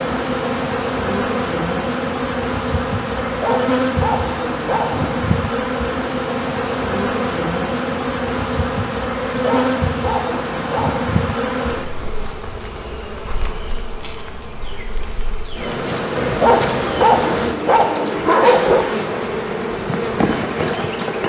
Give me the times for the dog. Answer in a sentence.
You can hear the dog from 3.2 to 5.2 s, from 9.3 to 11.2 s and from 16.1 to 18.9 s.